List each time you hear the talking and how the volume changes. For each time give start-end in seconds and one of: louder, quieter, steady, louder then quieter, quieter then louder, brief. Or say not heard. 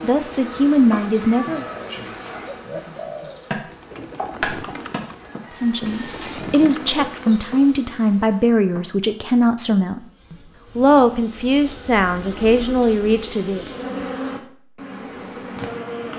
0.0-1.6 brief
5.6-13.7 steady.